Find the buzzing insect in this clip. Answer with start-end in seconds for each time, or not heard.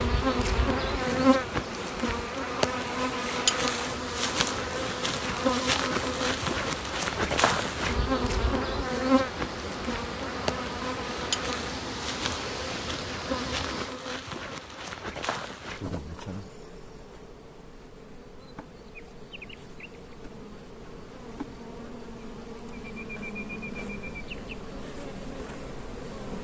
0.0-26.3.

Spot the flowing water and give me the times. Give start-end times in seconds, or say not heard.
0.0-13.9.